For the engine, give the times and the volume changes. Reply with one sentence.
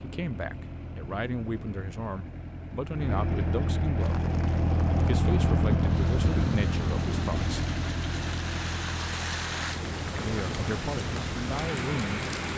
You can hear the engine from 0.0 to 12.5 s, getting louder then quieter.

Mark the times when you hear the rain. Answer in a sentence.
You can hear the rain from 4.0 to 12.5 s.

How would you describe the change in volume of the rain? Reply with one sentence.
The volume of the rain goes up.